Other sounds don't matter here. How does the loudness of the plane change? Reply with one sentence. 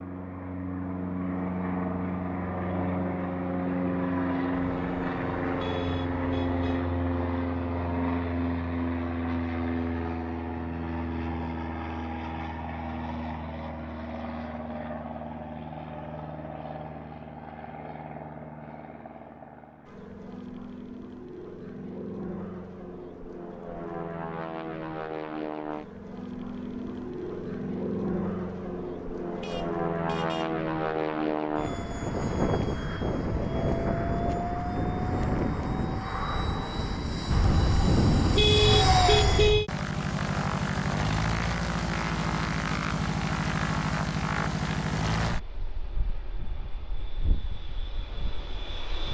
The loudness of the plane goes down, then up.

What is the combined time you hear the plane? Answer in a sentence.
You can hear the plane for 49 seconds altogether.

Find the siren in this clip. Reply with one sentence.
The siren can't be heard in this clip.